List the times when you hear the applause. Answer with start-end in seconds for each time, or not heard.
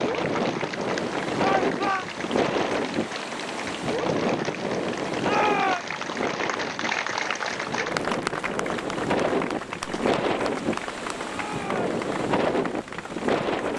0.0-13.7.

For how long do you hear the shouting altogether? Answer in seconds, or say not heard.
2 s.